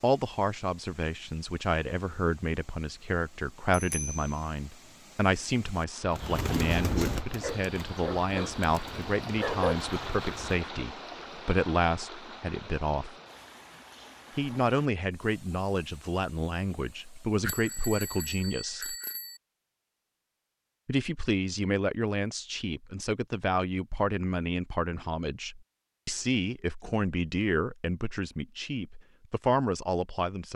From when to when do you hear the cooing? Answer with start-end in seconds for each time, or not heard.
6.1-10.6.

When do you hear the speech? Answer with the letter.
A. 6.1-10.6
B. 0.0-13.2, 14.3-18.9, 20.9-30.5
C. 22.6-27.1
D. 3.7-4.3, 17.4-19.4
B.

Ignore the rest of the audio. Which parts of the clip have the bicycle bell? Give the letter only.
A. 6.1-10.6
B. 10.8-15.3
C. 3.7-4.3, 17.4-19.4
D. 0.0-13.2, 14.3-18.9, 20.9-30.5
C.